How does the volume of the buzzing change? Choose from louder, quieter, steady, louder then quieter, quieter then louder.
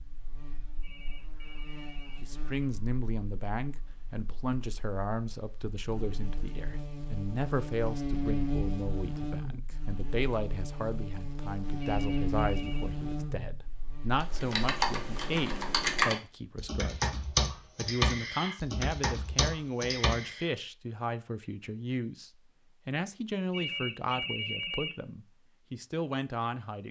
quieter then louder.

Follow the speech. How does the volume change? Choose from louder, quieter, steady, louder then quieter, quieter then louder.
steady.